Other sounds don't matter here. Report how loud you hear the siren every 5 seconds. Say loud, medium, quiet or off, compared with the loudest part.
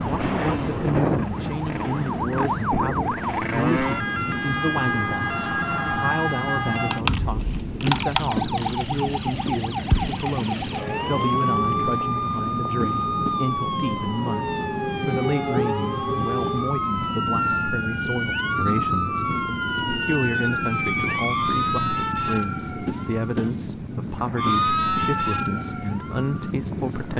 loud, loud, loud, loud, loud, medium.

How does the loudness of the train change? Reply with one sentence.
The loudness of the train stays about the same.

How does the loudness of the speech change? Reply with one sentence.
The volume of the speech stays about the same.